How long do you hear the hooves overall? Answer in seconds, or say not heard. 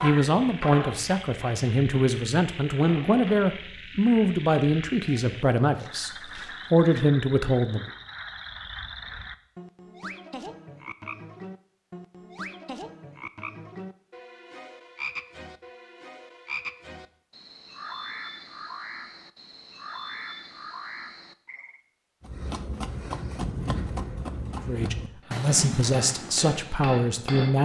5 s.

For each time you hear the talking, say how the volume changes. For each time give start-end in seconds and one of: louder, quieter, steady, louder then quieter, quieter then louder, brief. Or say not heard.
0.0-7.9 steady
24.6-27.5 brief.